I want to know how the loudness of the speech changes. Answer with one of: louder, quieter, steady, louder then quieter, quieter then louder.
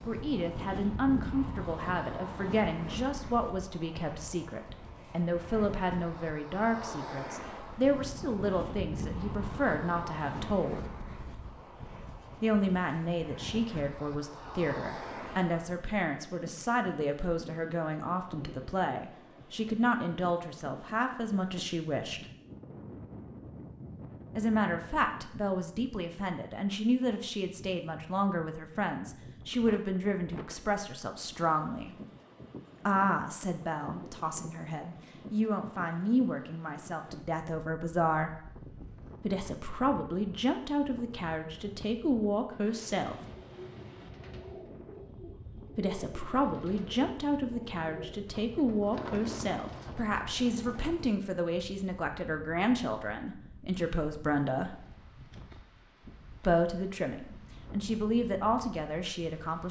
steady.